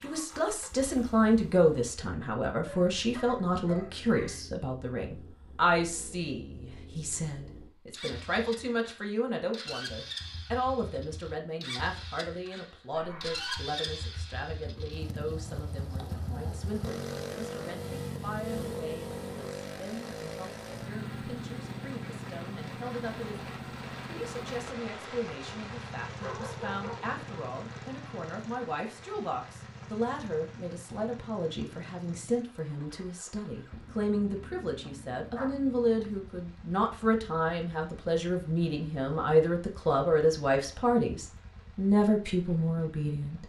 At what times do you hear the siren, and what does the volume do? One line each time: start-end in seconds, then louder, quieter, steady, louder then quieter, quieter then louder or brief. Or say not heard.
not heard.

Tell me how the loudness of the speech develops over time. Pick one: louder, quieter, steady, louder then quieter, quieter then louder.
quieter then louder.